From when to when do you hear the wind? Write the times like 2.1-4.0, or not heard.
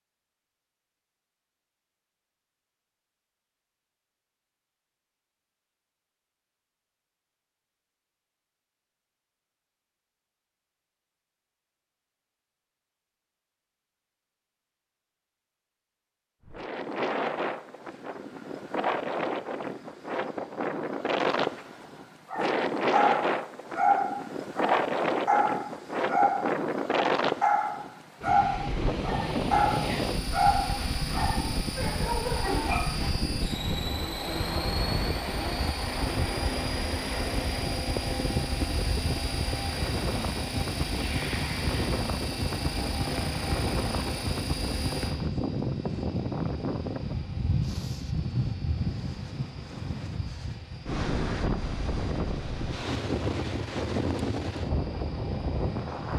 16.4-56.1.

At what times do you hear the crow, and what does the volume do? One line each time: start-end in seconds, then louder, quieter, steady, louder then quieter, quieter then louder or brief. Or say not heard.
not heard.